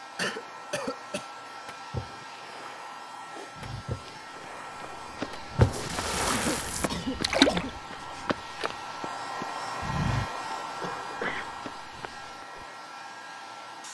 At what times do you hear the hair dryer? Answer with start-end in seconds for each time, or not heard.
0.0-13.8.